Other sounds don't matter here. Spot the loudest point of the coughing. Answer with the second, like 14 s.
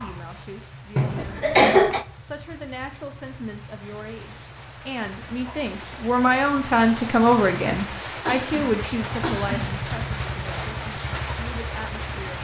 2 s.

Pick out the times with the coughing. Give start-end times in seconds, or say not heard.
0.9-2.0, 8.2-9.6.